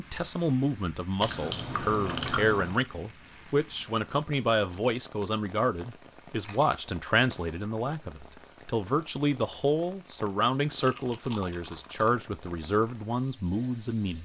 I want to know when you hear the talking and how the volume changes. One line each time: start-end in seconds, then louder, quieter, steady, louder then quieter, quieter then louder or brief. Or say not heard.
0.0-14.2 steady.